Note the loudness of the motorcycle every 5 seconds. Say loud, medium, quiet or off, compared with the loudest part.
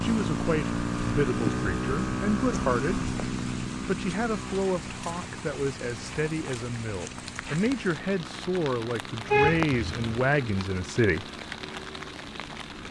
loud, quiet, quiet.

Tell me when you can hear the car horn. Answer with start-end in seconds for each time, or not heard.
9.2-10.2.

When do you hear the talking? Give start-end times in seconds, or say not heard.
0.0-3.0, 3.9-11.2.